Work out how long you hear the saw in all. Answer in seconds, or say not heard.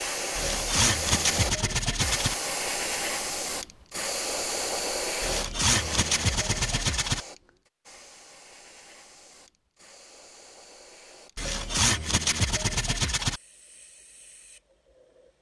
6 s.